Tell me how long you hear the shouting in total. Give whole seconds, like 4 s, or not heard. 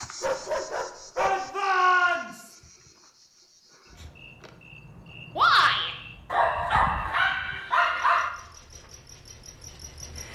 2 s.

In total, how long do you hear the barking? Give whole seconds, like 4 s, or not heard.
3 s.